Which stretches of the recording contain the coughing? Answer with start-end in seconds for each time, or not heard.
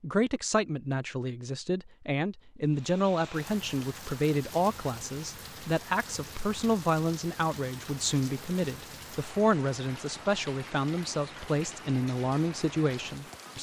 not heard.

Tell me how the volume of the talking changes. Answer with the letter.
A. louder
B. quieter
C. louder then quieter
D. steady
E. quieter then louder
D.